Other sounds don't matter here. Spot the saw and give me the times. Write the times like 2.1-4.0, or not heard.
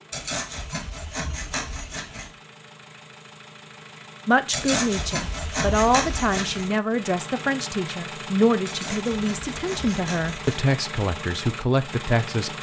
0.1-2.3, 4.5-6.7, 8.7-10.8.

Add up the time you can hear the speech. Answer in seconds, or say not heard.
8 s.